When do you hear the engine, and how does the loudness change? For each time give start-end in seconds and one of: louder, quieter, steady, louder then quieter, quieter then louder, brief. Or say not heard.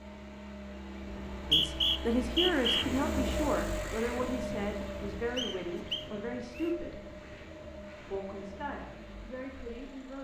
0.0-10.1 louder then quieter.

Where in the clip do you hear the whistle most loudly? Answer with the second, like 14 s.
2 s.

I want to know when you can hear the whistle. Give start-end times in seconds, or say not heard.
1.3-2.9, 5.3-6.8.